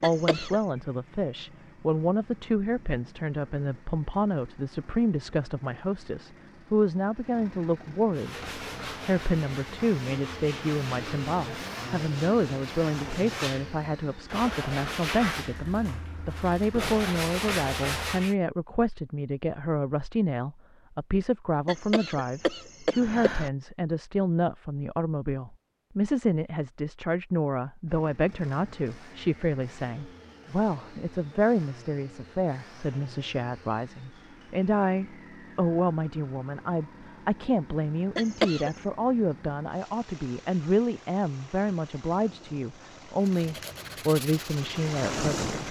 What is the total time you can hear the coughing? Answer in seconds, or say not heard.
3 s.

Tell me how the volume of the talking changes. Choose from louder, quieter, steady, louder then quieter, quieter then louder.
steady.